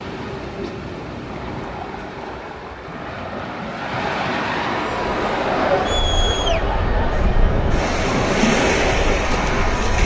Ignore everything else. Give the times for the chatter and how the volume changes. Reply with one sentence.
You can hear the chatter from 4.7 to 10.0 s, getting quieter.